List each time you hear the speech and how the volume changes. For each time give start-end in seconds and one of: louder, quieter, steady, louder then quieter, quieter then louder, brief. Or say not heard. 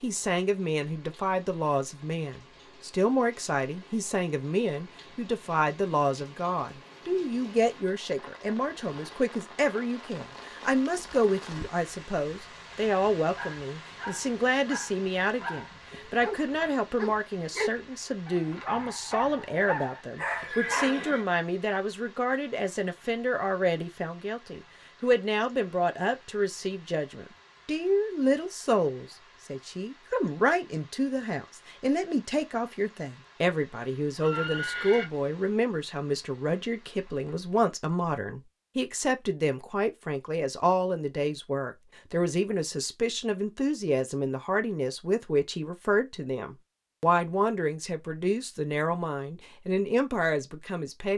0.0-51.1 steady.